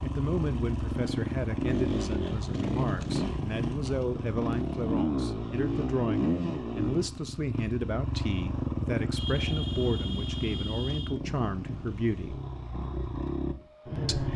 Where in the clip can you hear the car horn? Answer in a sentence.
You can hear the car horn from 9.2 to 11.2 s.